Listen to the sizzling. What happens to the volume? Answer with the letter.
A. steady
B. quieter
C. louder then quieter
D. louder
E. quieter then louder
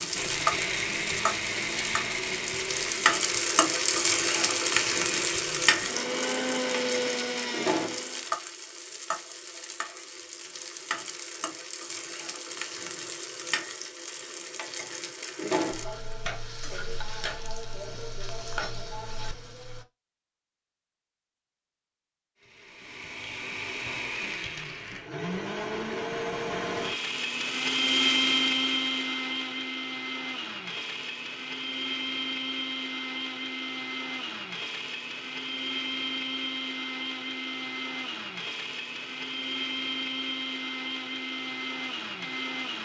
B.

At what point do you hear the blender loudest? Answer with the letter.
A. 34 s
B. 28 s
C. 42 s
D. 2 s
B.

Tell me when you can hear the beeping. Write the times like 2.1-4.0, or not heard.
not heard.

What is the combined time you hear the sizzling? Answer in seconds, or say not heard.
20 s.